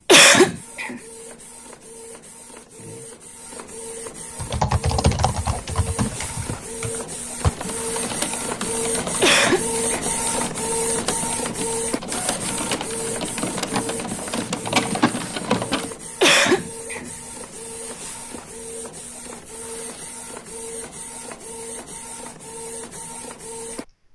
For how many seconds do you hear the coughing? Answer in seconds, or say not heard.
3 s.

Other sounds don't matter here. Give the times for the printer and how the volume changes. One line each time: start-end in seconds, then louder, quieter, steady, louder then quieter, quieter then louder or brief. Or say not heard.
0.0-24.1 louder then quieter.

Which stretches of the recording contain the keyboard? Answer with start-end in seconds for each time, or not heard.
4.3-15.9.